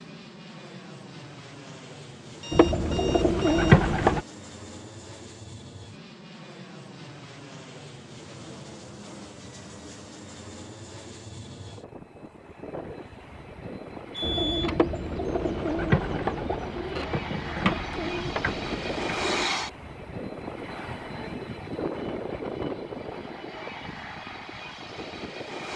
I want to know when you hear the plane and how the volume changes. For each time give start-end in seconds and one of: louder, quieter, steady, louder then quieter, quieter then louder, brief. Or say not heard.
0.0-25.7 louder.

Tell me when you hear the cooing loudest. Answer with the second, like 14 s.
4 s.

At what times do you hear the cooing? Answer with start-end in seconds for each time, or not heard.
2.5-4.2, 14.2-19.5.